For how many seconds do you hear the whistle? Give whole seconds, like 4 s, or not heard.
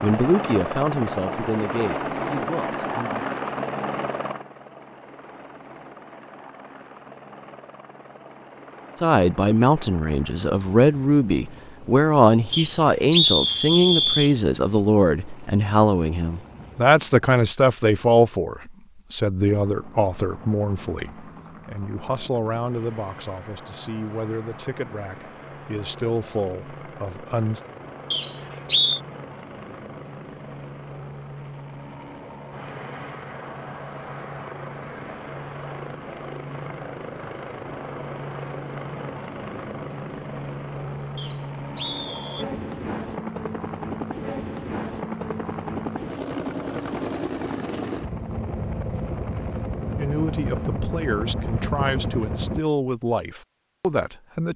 4 s.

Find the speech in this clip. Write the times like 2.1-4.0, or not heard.
0.0-3.2, 8.9-27.6, 50.0-54.5.